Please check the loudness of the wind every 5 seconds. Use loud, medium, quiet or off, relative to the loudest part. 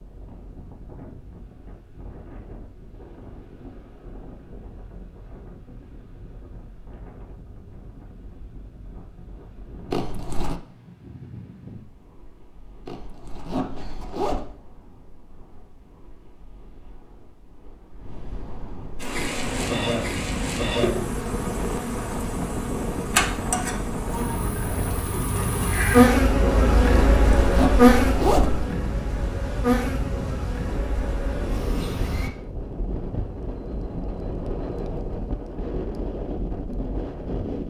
quiet, quiet, quiet, medium, loud, loud, loud, loud.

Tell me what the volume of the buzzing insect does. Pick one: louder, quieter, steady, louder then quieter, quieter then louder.
louder then quieter.